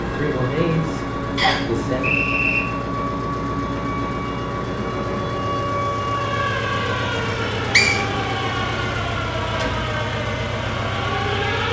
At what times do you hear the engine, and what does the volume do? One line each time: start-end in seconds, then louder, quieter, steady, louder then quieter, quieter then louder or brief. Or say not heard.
0.0-11.6 steady.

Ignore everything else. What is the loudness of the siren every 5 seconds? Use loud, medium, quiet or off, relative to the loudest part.
medium, loud, loud.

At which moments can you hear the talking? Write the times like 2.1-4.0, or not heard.
0.0-2.2.